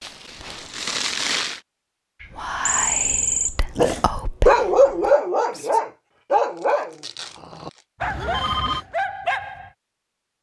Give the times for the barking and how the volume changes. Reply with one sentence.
The barking can be heard from 3.8 to 9.7 s, getting quieter.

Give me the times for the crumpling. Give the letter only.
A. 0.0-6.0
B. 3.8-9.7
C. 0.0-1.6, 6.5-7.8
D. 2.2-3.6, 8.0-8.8
C.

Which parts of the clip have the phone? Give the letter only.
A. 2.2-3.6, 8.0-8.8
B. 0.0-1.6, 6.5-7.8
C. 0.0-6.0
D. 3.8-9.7
A.